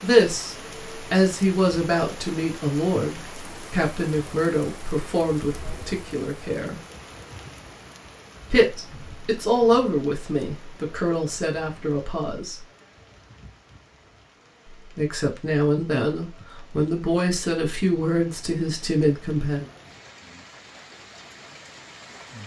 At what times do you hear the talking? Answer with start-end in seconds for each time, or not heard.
0.0-6.8, 8.5-12.7, 14.9-19.7.